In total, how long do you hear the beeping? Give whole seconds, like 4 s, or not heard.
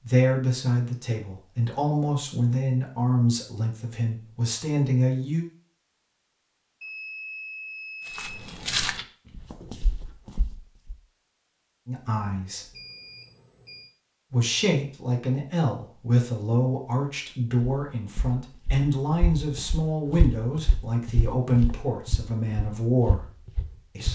3 s.